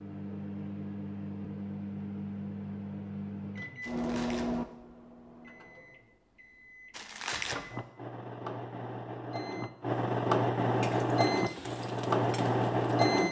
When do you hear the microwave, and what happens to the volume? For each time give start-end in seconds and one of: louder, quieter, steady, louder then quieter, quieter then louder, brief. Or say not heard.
0.0-13.2 quieter then louder.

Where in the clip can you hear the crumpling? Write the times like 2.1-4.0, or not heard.
3.8-4.6, 6.9-7.6.